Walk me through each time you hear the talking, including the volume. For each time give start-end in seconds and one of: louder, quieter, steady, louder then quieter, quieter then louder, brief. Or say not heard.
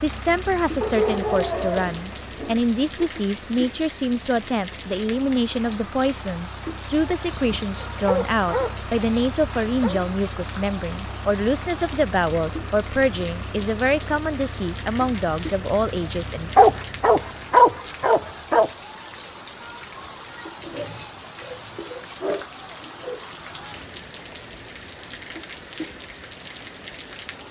0.0-16.5 steady.